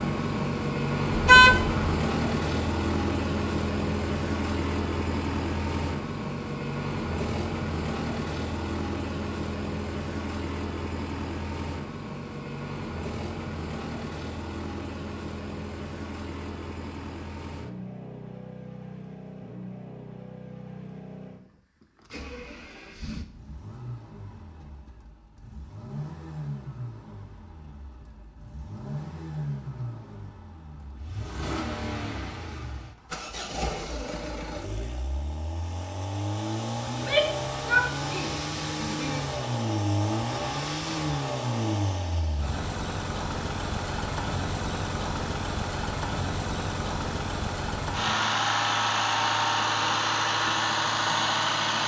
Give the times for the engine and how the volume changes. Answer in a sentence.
You can hear the engine from 0.0 to 51.8 s, getting quieter then louder.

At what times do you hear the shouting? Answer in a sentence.
You can hear the shouting from 36.9 to 39.2 s.